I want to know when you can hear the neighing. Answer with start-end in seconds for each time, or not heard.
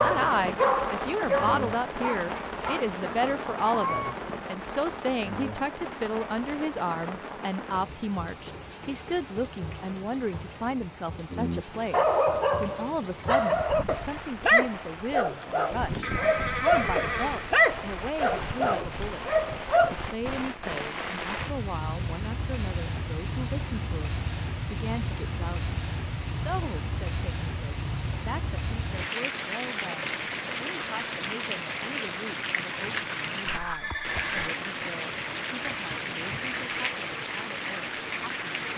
16.0-17.5, 33.5-34.5.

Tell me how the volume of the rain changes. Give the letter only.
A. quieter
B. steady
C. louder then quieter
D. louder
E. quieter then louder
E.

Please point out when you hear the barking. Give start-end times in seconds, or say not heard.
0.0-4.2, 11.3-19.9.